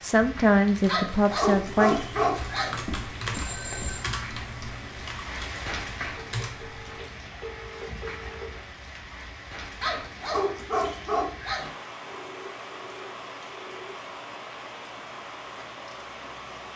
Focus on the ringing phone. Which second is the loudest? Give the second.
4 s.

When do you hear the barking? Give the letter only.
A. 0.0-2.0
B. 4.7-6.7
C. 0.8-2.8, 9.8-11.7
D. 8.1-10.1
C.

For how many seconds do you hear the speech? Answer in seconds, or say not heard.
2 s.